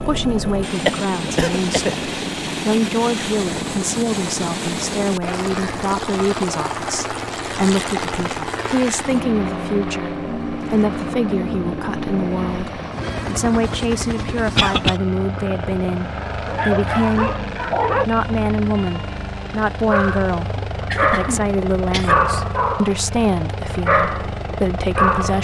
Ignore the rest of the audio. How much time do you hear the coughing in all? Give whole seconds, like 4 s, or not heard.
3 s.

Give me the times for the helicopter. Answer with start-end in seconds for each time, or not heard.
0.0-25.4.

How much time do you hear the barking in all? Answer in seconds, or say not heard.
7 s.